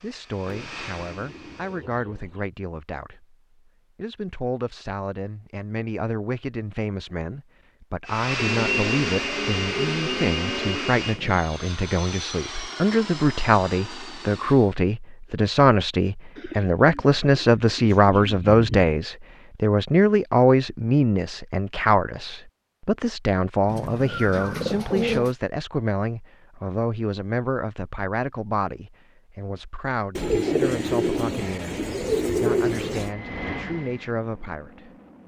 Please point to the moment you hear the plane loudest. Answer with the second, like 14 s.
9 s.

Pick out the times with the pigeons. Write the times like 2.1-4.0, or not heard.
0.5-2.5, 8.3-11.0, 16.4-18.9, 23.6-25.4, 30.1-33.1.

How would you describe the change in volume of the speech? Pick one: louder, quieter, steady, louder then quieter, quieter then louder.
louder then quieter.